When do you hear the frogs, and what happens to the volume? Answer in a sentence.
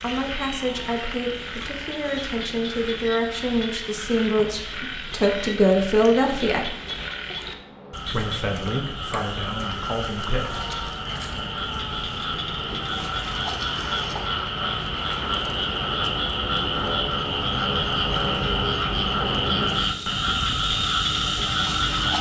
You can hear the frogs from 0.0 to 22.1 s, getting louder.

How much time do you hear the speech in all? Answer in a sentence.
You can hear the speech for 9 seconds altogether.